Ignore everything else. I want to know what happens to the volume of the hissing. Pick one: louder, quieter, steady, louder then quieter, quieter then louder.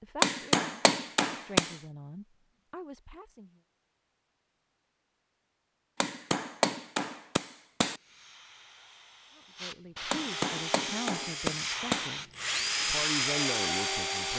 louder.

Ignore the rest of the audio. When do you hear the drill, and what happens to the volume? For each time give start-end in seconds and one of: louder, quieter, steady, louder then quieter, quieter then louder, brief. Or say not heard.
10.2-14.3 louder.